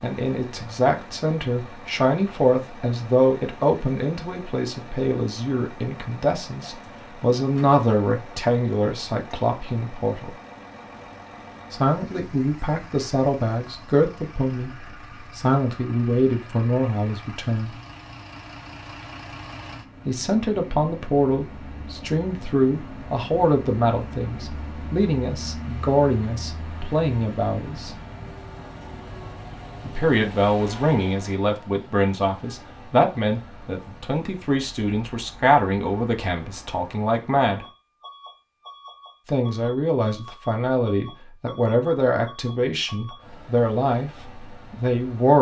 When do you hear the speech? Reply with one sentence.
The speech can be heard from 0.0 to 10.3 s, from 11.7 to 17.8 s, from 20.1 to 27.9 s, from 29.9 to 37.6 s and from 39.2 to 45.3 s.